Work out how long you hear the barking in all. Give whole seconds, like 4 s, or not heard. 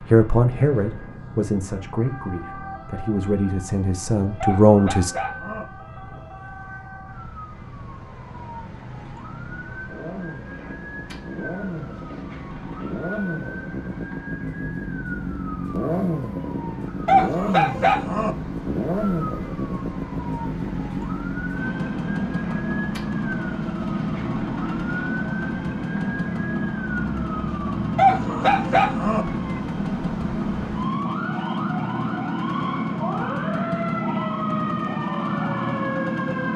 4 s.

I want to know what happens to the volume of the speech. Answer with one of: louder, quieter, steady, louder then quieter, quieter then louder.
quieter then louder.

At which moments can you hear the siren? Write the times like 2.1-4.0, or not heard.
0.0-36.5.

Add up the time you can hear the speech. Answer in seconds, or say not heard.
5 s.